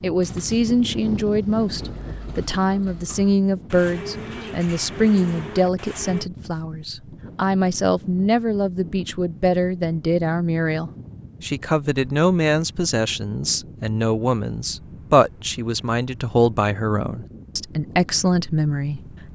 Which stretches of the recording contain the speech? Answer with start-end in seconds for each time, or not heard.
0.0-19.3.